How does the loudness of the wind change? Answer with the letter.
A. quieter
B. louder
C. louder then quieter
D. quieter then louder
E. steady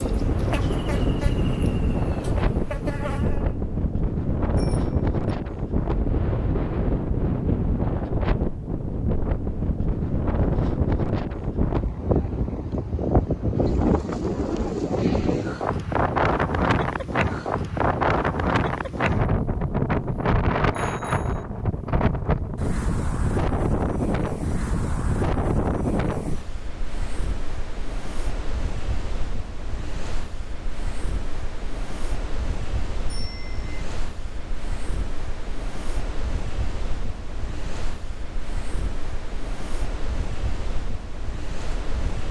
A.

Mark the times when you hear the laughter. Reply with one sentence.
You can't hear the laughter here.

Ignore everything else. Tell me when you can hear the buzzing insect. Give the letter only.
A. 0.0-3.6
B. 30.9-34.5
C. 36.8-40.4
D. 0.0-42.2
A.